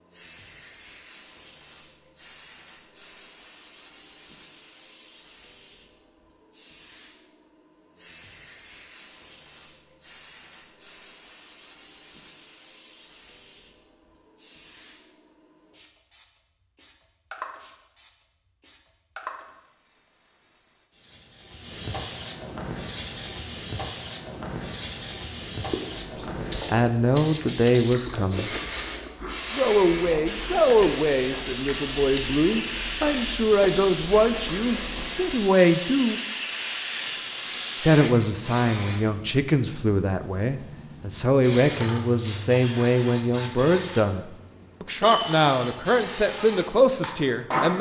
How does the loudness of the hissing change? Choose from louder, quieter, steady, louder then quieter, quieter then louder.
louder.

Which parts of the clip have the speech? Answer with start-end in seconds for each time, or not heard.
26.2-28.5, 29.5-36.2, 37.8-47.7.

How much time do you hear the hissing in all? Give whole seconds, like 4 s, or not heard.
48 s.